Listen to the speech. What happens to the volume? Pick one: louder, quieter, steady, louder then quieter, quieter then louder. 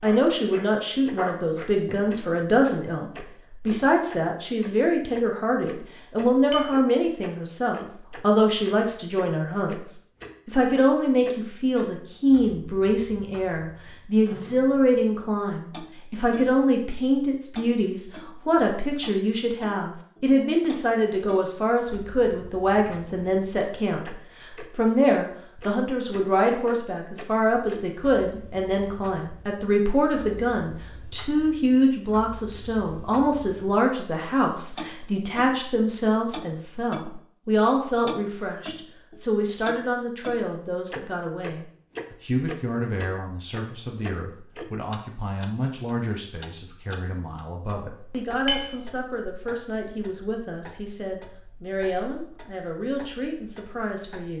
quieter.